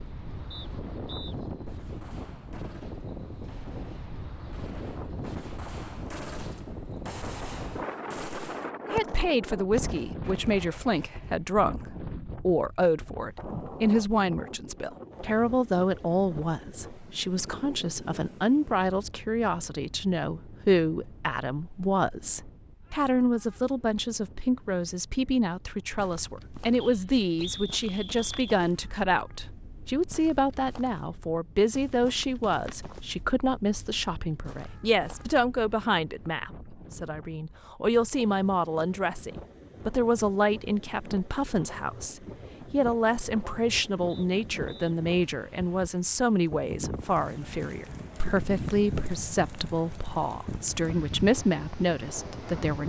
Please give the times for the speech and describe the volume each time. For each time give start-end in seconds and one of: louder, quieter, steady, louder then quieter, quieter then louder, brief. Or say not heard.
8.8-52.8 steady.